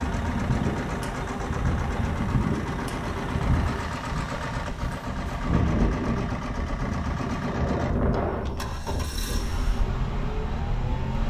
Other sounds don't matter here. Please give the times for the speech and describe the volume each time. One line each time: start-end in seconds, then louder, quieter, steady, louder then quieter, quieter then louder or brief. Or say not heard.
not heard.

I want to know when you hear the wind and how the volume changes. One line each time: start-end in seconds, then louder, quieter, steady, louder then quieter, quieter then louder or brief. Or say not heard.
0.0-11.2 quieter.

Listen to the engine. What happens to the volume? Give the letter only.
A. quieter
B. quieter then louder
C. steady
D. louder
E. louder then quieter
C.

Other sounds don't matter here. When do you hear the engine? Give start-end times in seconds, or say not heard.
0.0-11.2.